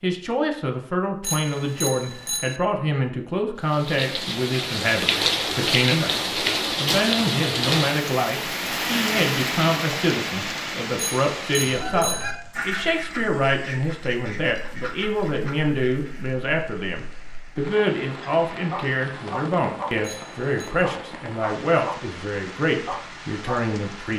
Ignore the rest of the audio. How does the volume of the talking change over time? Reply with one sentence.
The volume of the talking stays about the same.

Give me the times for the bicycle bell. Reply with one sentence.
You can hear the bicycle bell from 1.2 to 2.6 s, from 10.9 to 12.3 s and from 20.0 to 20.7 s.